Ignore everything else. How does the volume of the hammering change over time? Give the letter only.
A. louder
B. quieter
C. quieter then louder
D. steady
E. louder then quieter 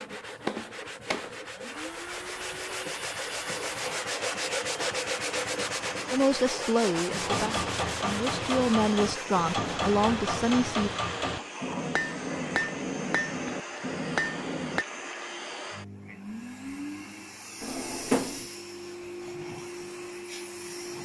D.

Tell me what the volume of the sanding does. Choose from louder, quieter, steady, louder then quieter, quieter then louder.
louder then quieter.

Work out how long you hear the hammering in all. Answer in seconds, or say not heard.
8 s.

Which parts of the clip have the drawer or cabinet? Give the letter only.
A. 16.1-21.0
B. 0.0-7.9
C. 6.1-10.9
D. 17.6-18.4
D.